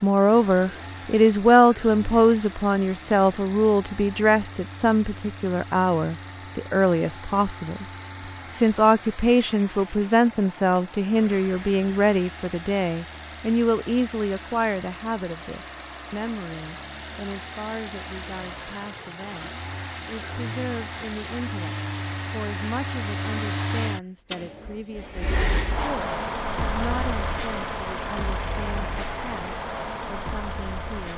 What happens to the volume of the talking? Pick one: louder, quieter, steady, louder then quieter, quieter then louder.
quieter.